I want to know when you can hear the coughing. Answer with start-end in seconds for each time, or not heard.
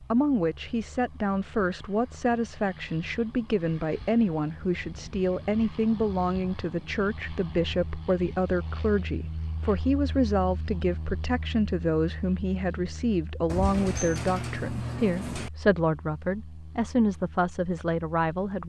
not heard.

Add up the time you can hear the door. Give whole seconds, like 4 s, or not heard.
2 s.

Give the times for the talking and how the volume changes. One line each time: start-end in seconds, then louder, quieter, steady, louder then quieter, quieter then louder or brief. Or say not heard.
0.0-18.6 steady.